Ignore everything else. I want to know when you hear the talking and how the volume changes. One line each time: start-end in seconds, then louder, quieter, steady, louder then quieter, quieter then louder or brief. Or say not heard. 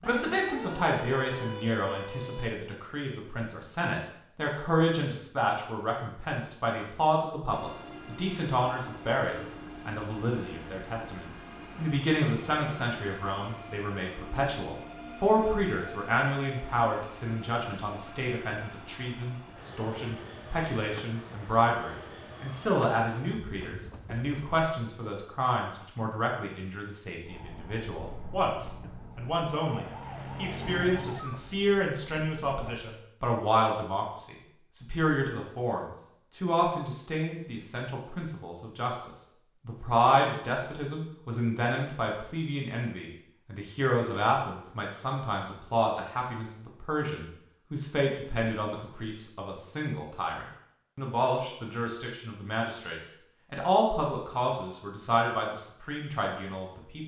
0.0-57.0 steady.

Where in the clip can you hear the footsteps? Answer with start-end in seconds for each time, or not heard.
not heard.